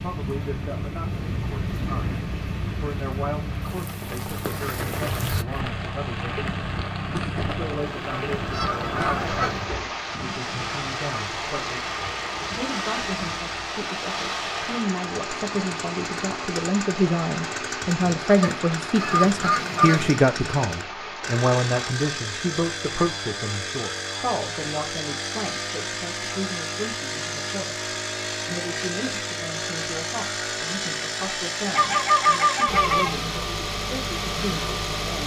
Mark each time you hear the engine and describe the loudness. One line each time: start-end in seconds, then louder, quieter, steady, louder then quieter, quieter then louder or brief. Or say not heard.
0.0-35.2 louder.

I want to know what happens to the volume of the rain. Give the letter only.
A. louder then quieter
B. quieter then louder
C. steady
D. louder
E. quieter
C.